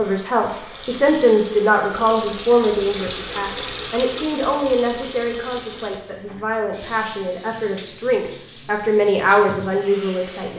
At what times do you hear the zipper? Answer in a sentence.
The zipper can't be heard in this clip.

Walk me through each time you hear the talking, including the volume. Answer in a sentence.
The talking can be heard from 0.0 to 10.5 s, getting quieter then louder.